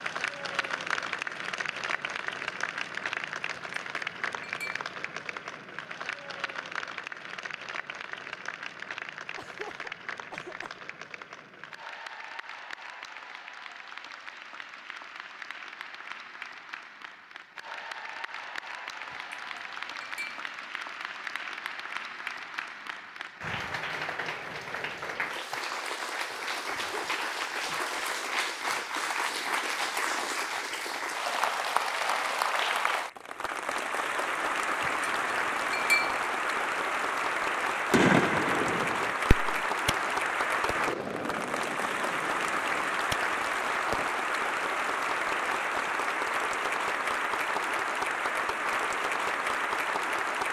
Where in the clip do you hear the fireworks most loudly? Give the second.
38 s.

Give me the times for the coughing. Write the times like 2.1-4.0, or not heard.
9.3-10.8, 26.7-28.1.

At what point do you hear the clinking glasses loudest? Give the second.
36 s.